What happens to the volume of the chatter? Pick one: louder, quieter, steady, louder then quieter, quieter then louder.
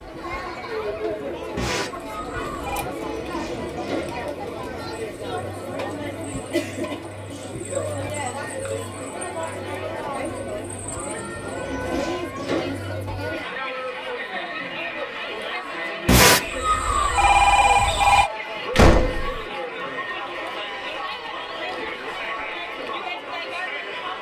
steady.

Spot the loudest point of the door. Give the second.
19 s.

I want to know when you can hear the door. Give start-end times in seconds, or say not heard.
2.9-4.2, 11.4-12.8, 18.8-19.4.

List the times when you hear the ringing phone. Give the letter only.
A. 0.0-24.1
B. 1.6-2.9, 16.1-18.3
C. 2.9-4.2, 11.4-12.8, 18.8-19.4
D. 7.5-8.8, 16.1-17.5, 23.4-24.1
B.